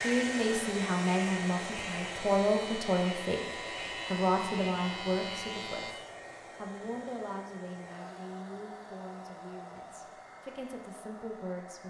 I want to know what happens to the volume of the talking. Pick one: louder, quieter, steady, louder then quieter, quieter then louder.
quieter.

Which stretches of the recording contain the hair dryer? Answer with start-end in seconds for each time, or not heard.
0.0-11.8.